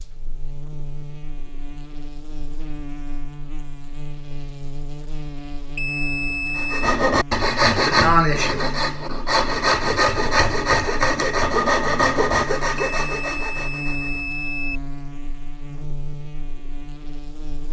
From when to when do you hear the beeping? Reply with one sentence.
The beeping can be heard from 5.8 to 7.0 s and from 12.8 to 14.8 s.